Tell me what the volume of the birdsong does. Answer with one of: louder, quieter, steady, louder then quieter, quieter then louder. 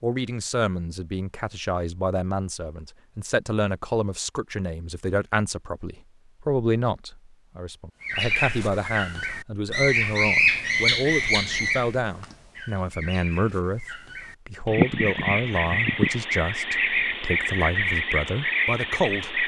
quieter then louder.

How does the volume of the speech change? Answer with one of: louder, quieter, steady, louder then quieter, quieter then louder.
steady.